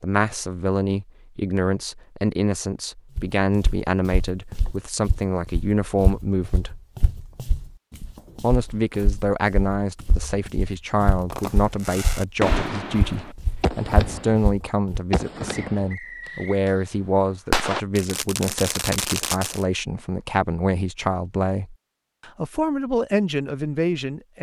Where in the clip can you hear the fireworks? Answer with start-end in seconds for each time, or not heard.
11.3-16.7, 17.5-19.6.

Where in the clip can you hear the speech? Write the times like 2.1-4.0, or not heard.
0.0-6.8, 8.4-24.3.